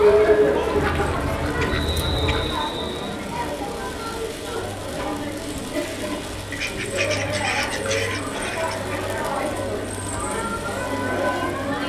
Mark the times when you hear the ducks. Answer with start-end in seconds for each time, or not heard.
0.8-2.6, 6.5-8.9.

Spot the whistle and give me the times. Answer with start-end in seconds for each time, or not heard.
1.7-3.1.